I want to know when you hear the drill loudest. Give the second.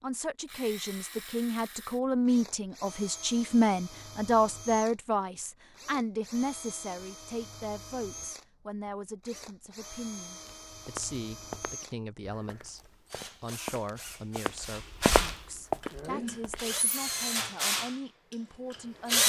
19 s.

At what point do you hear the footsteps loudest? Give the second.
15 s.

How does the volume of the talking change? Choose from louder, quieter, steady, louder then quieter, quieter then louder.
quieter.